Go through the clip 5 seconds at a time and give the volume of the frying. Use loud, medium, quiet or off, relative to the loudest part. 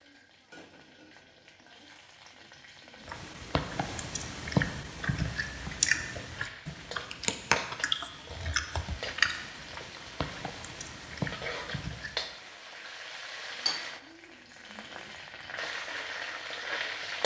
quiet, medium, loud, loud.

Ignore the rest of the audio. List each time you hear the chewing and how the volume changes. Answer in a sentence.
You can hear the chewing from 3.0 to 12.3 s, getting quieter.